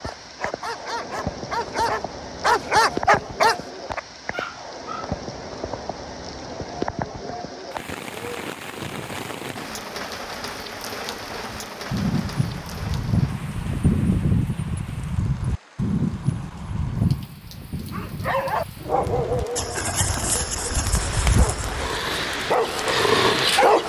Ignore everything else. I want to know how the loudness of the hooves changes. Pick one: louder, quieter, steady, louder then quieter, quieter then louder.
quieter then louder.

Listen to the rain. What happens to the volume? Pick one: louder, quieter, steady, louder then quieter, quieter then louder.
quieter then louder.